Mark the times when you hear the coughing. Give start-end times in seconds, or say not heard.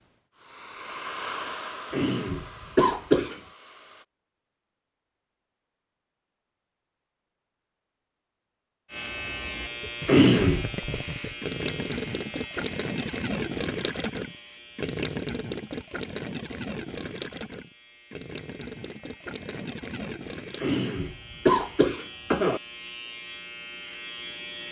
1.9-3.4, 10.1-10.8, 20.6-22.6.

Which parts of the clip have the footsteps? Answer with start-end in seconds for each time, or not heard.
not heard.